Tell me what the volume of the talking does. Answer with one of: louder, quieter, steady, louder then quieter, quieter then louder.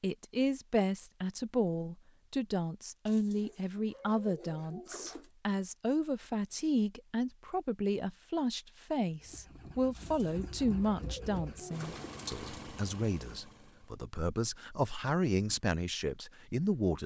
steady.